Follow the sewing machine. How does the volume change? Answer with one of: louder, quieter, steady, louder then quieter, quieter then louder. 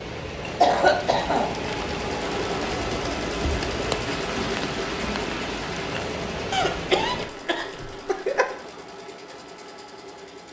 quieter.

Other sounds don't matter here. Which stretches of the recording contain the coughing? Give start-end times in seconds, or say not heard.
0.6-1.6, 6.5-8.5.